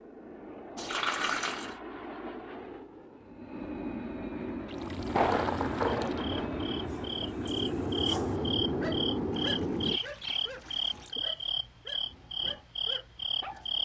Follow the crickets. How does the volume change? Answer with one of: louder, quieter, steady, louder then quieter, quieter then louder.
louder.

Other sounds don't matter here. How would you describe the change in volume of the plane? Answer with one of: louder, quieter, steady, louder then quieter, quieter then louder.
louder.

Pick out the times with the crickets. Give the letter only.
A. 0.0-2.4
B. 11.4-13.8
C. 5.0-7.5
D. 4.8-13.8
D.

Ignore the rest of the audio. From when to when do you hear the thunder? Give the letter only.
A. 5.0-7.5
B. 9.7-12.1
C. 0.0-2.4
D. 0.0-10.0
A.